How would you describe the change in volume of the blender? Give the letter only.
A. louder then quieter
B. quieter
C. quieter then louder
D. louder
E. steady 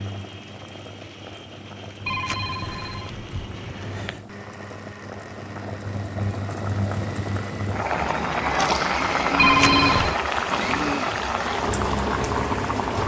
D.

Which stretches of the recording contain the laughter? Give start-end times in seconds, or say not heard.
not heard.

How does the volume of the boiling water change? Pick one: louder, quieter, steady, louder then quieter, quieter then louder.
louder.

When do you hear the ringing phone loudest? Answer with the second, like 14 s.
10 s.